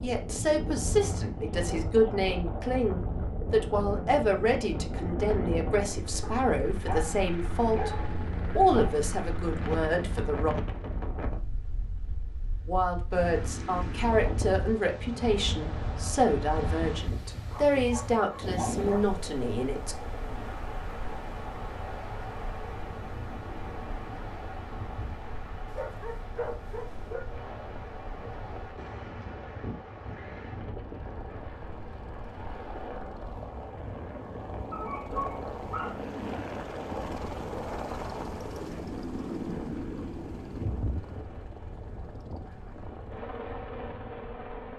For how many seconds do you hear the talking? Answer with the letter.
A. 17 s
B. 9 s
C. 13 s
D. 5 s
A.